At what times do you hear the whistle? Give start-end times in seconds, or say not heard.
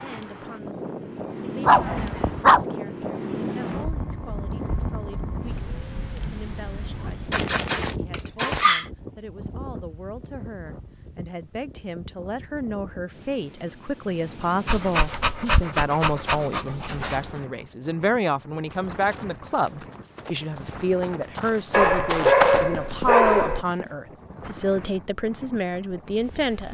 not heard.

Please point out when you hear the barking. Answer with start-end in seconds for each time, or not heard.
1.6-2.6, 7.3-8.8, 14.7-17.3, 21.7-23.6.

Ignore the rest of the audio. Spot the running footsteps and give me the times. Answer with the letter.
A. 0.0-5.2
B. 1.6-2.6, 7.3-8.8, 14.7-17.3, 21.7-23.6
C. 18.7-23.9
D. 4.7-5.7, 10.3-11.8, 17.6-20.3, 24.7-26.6
C.